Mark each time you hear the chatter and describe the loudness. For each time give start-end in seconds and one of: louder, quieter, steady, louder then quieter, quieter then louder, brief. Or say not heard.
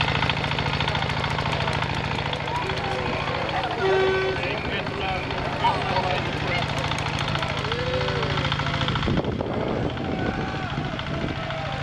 0.2-11.7 louder then quieter.